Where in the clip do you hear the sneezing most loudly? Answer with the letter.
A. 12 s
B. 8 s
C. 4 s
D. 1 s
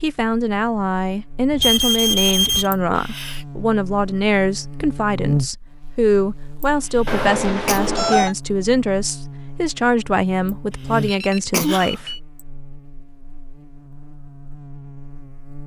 A.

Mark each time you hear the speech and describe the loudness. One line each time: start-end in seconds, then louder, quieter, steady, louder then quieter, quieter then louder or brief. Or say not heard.
0.0-12.1 steady.